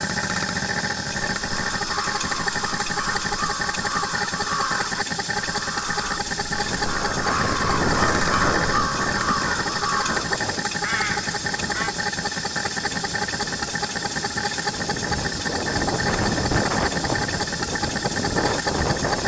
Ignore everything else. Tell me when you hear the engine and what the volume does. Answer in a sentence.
The engine can be heard from 0.0 to 19.2 s, at a steady volume.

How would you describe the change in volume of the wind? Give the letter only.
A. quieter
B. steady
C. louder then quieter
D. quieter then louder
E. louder
D.